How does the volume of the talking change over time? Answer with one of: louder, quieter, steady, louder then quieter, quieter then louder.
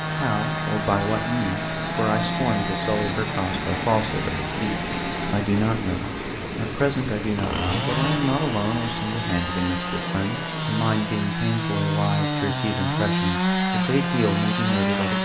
steady.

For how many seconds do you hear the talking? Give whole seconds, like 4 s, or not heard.
15 s.